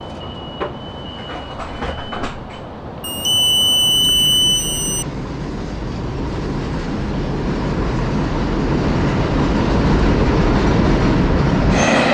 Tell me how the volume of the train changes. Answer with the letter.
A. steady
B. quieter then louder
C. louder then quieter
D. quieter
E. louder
E.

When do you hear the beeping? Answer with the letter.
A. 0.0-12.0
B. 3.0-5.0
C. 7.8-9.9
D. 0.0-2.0
B.